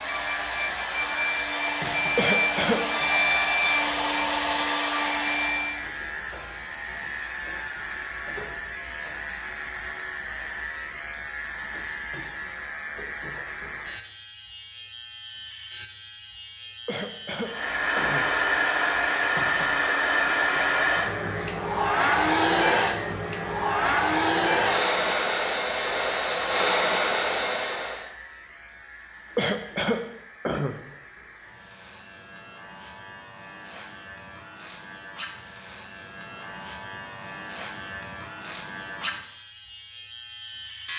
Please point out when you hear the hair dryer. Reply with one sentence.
The hair dryer can be heard from 0.0 to 5.8 s and from 17.4 to 28.1 s.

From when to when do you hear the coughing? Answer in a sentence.
You can hear the coughing from 2.1 to 2.8 s, from 16.9 to 18.2 s and from 29.4 to 30.8 s.